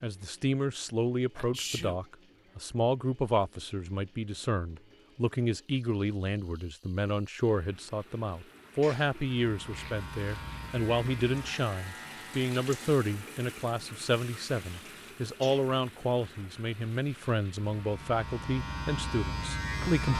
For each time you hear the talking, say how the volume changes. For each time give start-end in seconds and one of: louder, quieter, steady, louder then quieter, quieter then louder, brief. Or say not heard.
0.0-20.1 steady.